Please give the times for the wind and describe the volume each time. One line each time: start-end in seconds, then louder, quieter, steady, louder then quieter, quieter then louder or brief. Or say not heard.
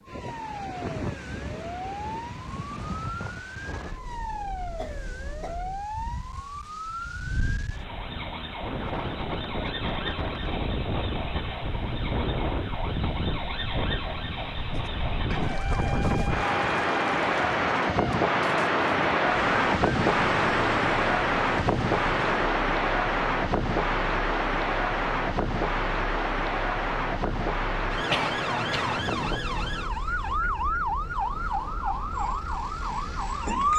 0.0-33.7 louder then quieter.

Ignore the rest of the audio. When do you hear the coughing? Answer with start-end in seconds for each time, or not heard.
4.8-5.6, 14.8-15.6, 28.1-29.0.